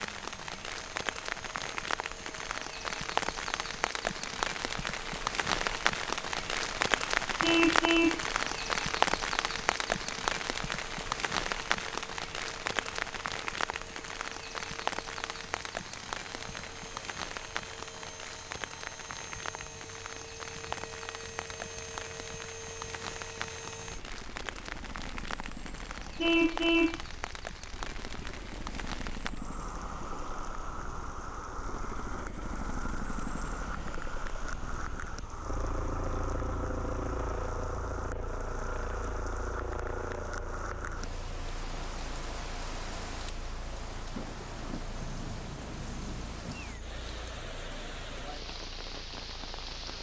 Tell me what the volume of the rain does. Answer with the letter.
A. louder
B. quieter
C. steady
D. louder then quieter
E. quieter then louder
B.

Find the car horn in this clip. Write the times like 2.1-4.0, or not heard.
7.4-8.2, 26.1-27.0.